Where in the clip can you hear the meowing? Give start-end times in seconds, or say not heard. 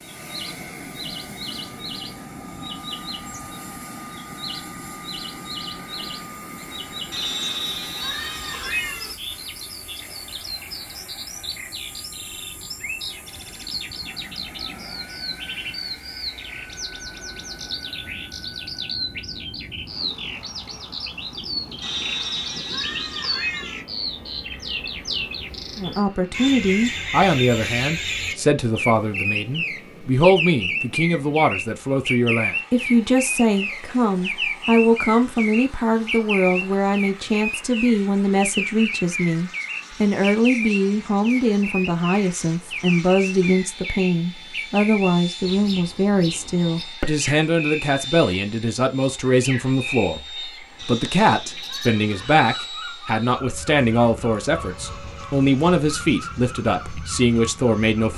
7.1-9.2, 21.8-23.9, 50.8-52.5.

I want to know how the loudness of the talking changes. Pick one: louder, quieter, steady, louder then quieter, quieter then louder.
steady.